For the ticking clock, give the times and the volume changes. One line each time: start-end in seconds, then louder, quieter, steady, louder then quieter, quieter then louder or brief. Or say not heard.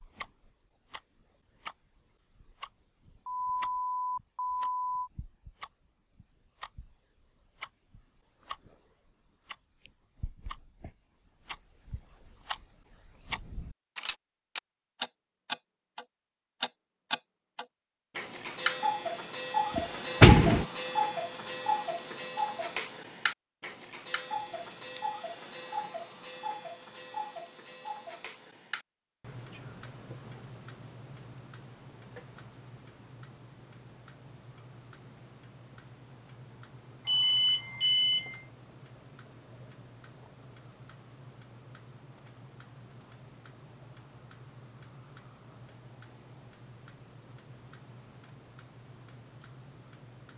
0.0-50.3 louder then quieter.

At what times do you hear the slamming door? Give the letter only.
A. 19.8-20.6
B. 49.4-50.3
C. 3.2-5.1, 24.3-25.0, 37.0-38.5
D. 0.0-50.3
A.